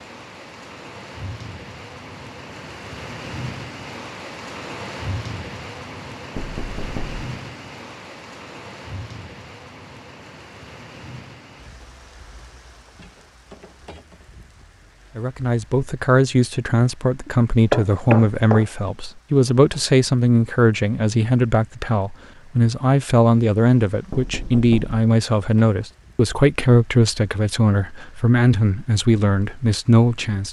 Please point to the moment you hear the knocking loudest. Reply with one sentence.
The volume of the knocking peaks at 18 seconds.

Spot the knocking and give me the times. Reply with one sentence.
You can hear the knocking from 6.3 to 7.2 s, from 17.2 to 18.6 s and from 24.1 to 24.9 s.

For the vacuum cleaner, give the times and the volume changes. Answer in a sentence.
The vacuum cleaner can't be heard in this clip.